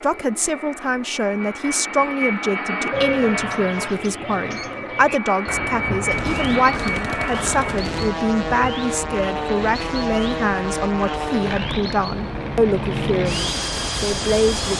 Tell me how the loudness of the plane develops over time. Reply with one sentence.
The loudness of the plane stays about the same.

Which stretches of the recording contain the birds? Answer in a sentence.
The birds can be heard from 2.9 to 14.7 s.